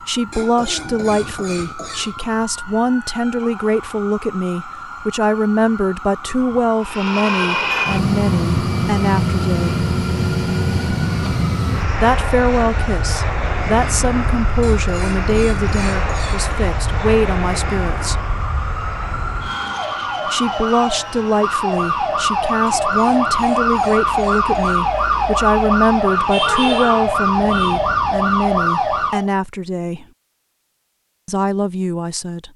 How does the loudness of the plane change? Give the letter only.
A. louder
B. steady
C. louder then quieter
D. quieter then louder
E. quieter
E.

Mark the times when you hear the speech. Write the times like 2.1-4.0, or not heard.
0.1-9.8, 11.9-18.3, 20.3-30.1, 31.2-32.5.